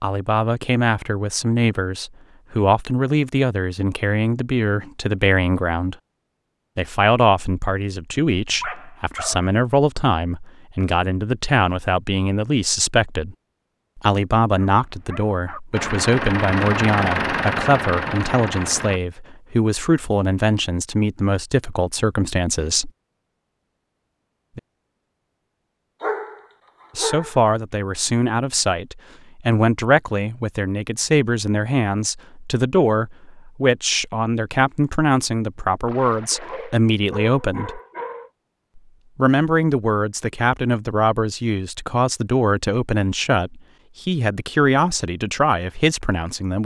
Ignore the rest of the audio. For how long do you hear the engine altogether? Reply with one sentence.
You can hear the engine for 3 seconds altogether.